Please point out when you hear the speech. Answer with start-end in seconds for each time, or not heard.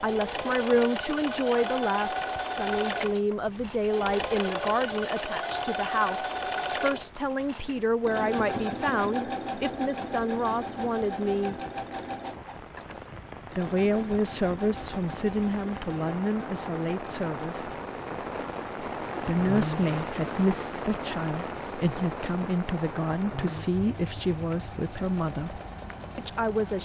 0.0-11.6, 13.6-17.7, 19.2-26.8.